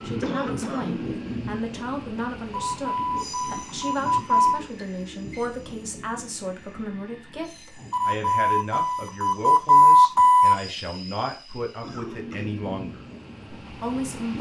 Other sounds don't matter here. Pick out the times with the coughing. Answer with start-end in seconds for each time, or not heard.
0.2-1.1, 11.5-12.5.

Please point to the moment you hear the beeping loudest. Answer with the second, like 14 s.
10 s.